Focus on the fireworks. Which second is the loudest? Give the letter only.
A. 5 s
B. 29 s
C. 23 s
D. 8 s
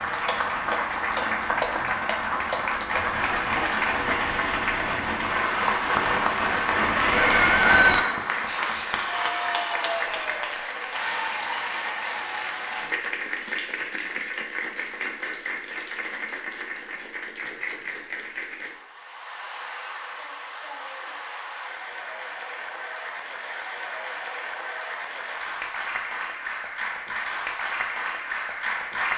D.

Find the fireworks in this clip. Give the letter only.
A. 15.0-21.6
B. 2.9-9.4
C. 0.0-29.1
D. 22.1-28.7
B.